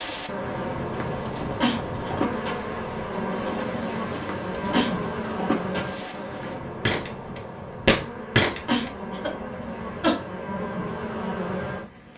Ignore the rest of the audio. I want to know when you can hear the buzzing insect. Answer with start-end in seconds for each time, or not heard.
0.0-12.1.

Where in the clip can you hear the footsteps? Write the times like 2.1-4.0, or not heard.
0.9-8.9.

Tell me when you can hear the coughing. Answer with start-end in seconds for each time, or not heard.
1.4-2.2, 4.5-5.0, 8.5-10.2.